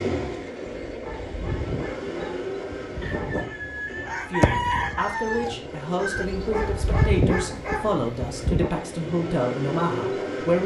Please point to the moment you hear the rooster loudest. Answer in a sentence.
The loudest moment of the rooster is at 5 seconds.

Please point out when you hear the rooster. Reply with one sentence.
The rooster can be heard from 3.0 to 6.2 s.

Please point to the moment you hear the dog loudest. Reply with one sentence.
The loudest moment of the dog is at 7 seconds.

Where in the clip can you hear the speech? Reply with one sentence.
You can hear the speech from 4.2 to 10.6 s.